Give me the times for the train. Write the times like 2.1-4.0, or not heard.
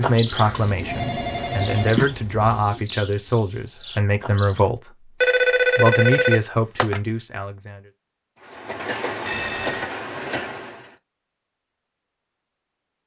0.1-2.0, 8.4-10.9.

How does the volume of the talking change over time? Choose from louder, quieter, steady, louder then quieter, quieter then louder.
steady.